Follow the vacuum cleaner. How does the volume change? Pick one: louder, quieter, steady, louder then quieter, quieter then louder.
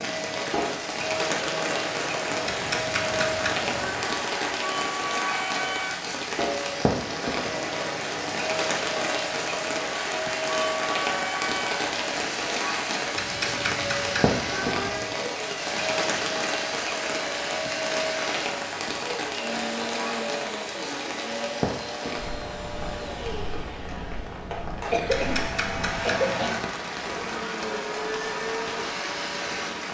steady.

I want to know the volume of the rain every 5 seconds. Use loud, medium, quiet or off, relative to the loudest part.
loud, loud, loud, loud, medium, medium.